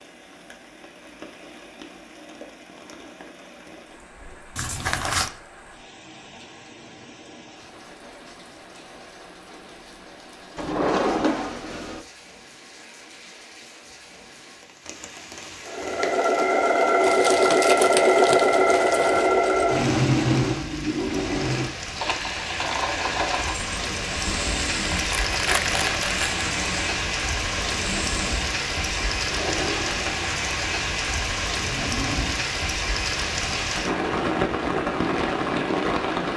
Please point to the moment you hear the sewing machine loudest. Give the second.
18 s.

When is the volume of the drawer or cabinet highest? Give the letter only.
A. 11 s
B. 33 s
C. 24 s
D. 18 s
A.